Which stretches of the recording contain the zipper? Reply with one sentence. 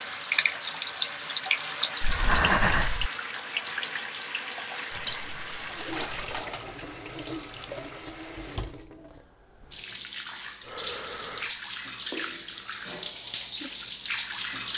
The zipper can be heard from 5.0 to 6.0 s.